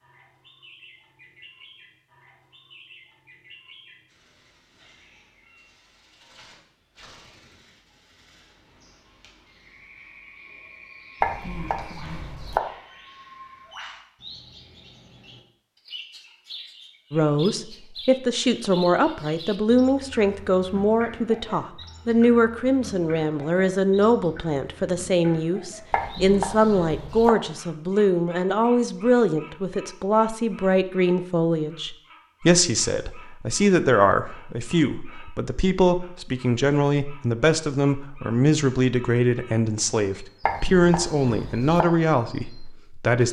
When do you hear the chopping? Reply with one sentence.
The chopping can be heard from 11.2 to 12.6 s, from 25.9 to 27.3 s and from 40.4 to 41.9 s.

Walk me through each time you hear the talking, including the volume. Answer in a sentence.
The talking can be heard from 17.1 to 43.2 s, at a steady volume.